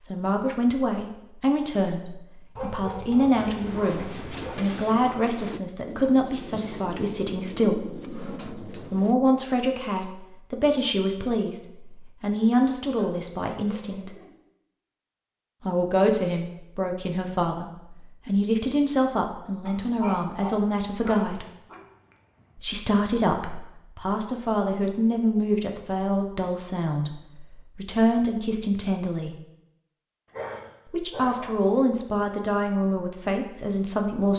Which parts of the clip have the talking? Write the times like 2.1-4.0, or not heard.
0.0-14.1, 15.6-21.4, 22.6-29.4, 30.9-34.3.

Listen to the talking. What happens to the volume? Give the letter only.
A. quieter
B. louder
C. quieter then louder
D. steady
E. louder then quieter
D.